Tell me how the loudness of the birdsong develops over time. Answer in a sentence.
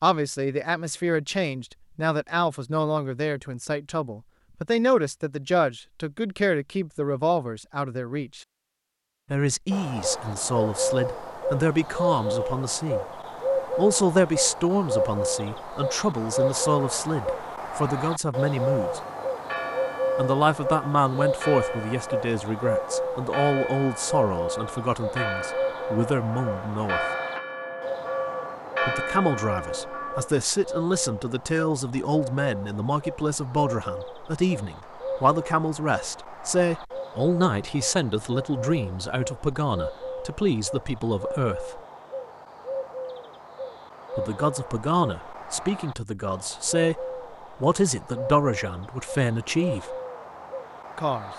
The loudness of the birdsong goes down.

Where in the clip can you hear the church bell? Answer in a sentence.
The church bell can be heard from 19.0 to 30.3 s.